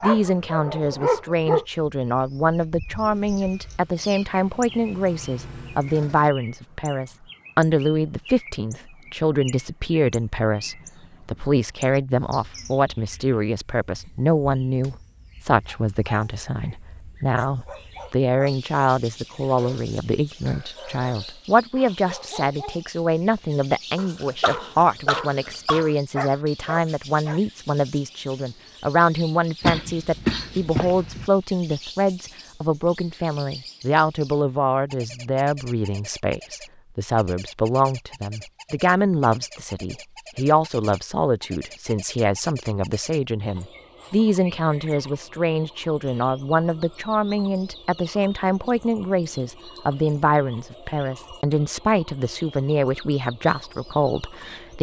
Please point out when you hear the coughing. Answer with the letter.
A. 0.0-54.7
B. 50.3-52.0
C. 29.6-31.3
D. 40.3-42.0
C.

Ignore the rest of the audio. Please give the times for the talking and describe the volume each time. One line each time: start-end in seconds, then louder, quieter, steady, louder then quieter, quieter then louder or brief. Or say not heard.
0.0-54.7 steady.